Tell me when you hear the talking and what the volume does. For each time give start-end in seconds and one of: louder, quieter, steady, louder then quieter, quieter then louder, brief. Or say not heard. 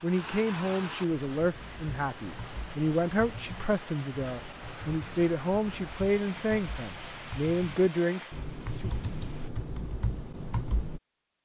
0.0-8.9 steady.